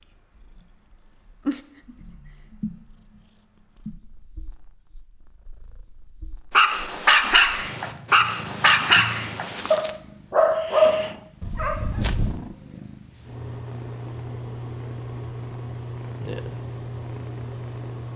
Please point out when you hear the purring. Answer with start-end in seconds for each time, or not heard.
0.0-18.1.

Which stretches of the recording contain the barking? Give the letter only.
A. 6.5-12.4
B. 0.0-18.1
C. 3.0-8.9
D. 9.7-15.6
A.